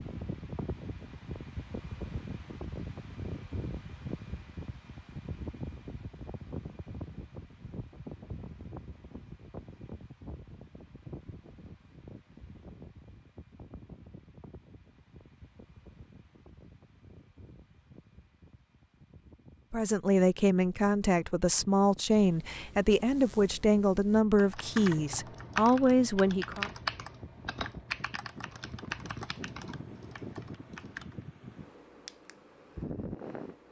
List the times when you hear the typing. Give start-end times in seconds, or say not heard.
24.4-31.1.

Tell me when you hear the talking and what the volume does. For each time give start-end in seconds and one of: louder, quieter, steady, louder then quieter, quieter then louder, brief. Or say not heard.
19.7-26.7 steady.